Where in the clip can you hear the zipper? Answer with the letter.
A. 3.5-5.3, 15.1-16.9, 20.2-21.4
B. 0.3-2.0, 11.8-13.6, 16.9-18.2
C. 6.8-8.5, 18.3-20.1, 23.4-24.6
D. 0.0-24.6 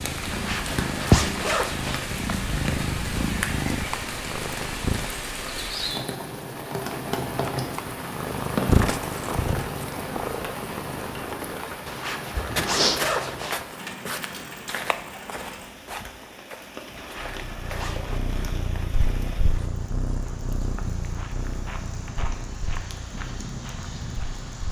B.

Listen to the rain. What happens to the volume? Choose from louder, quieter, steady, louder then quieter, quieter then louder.
quieter.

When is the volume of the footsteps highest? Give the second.
13 s.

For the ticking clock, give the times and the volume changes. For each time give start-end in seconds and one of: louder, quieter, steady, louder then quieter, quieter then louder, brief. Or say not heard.
not heard.